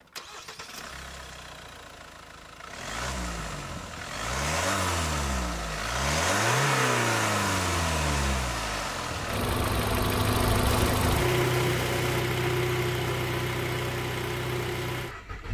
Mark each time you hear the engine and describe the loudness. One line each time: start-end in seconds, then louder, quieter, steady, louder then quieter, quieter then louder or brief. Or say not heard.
0.0-15.4 louder.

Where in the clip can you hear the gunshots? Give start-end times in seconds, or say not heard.
10.7-12.2.